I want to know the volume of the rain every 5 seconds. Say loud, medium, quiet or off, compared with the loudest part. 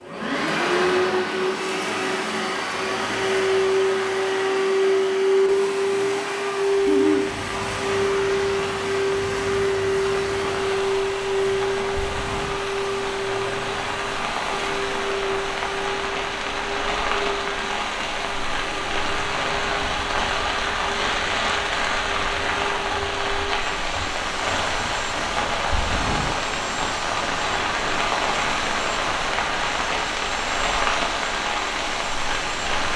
off, medium, medium, loud, loud, loud, loud.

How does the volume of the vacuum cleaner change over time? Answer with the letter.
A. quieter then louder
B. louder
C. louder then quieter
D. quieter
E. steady
D.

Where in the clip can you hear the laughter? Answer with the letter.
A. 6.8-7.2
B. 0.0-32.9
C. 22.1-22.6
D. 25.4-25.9
A.